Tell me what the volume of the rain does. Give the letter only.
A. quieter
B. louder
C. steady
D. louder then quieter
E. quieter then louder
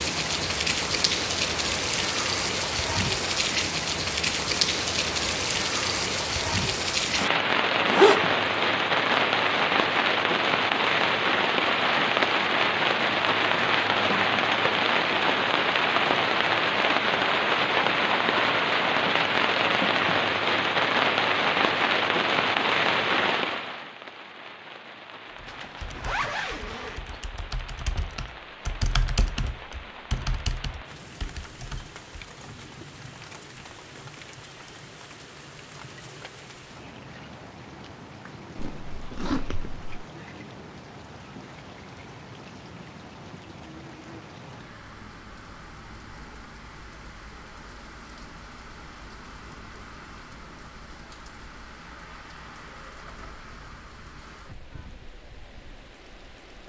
A.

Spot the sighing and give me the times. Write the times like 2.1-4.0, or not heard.
not heard.